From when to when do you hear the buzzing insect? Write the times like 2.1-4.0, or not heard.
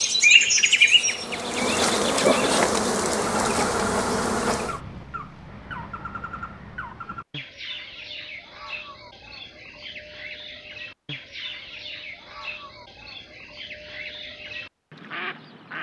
0.0-4.8.